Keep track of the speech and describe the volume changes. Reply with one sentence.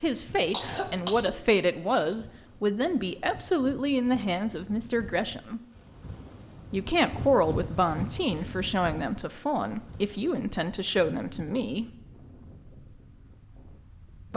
The loudness of the speech stays about the same.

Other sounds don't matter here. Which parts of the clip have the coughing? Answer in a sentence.
The coughing can be heard from 0.1 to 2.1 s.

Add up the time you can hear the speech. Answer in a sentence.
The speech can be heard for 11 seconds in total.